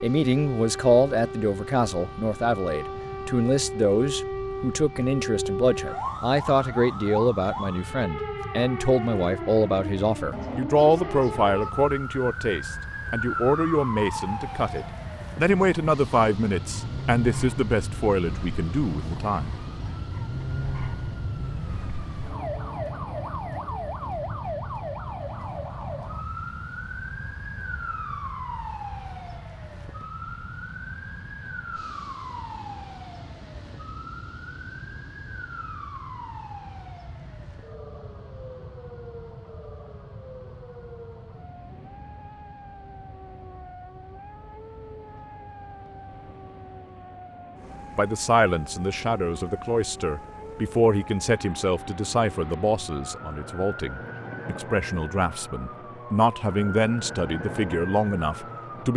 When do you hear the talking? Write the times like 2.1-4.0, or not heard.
0.0-19.6, 48.0-58.9.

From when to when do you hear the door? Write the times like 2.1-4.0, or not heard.
not heard.